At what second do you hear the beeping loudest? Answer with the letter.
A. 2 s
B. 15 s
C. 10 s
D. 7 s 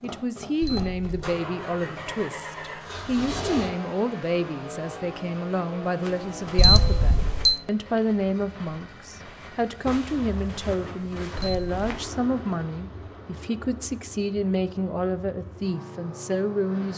D.